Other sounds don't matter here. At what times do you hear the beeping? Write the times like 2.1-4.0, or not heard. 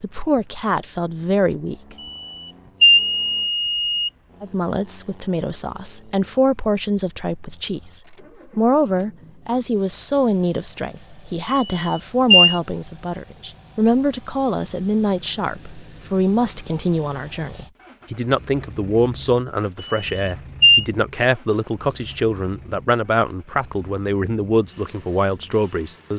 2.0-4.1, 11.5-12.6, 19.8-20.9.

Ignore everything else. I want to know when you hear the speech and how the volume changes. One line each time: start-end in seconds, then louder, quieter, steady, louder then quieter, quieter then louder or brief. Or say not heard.
0.0-1.9 brief
4.4-26.1 steady.